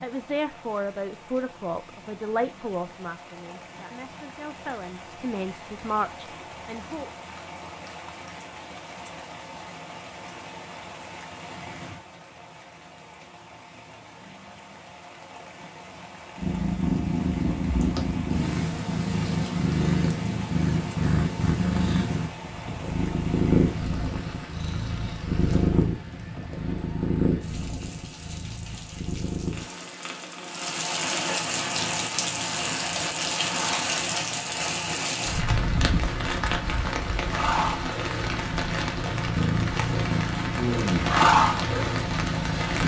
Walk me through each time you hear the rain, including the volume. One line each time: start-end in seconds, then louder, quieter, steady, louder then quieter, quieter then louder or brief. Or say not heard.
0.0-42.8 louder.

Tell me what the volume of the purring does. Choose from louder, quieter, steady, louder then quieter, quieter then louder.
quieter then louder.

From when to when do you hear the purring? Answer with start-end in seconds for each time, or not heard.
16.4-42.8.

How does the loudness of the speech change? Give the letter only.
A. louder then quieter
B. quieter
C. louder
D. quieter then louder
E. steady
D.